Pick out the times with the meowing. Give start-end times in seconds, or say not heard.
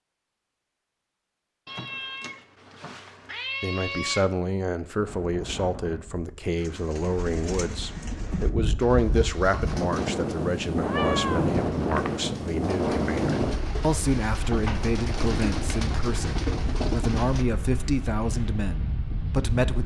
1.6-4.3, 10.8-12.2.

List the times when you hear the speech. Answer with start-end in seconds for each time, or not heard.
3.6-19.8.